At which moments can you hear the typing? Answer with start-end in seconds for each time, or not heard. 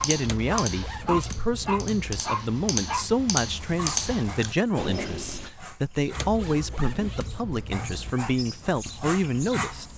0.0-5.5.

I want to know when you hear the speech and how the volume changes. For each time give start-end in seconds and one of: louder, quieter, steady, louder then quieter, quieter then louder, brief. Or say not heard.
0.0-9.8 steady.